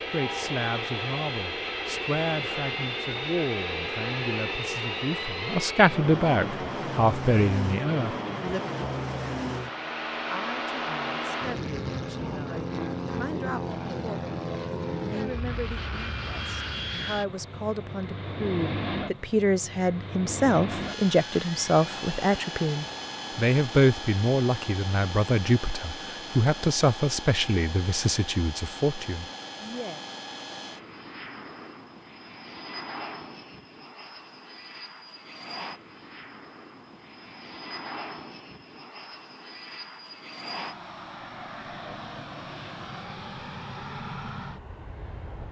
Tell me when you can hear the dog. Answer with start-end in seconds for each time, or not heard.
not heard.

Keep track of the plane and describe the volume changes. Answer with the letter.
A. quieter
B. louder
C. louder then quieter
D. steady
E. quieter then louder
A.